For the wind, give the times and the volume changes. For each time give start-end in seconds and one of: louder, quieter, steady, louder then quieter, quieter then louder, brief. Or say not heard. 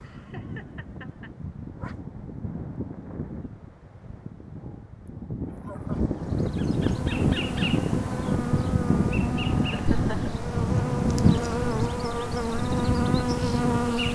0.0-14.1 louder.